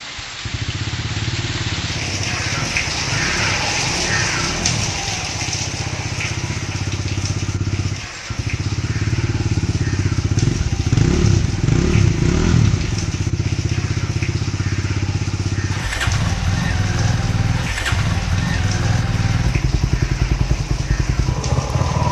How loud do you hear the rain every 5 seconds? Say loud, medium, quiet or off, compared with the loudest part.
loud, medium, medium, medium, medium.